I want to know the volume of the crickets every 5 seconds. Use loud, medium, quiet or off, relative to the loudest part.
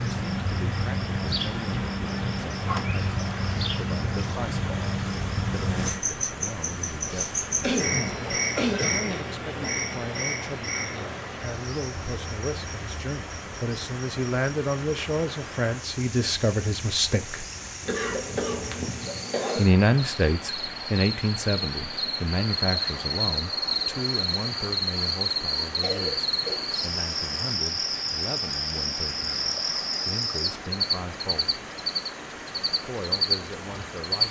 loud, loud, medium, quiet, loud, loud, loud.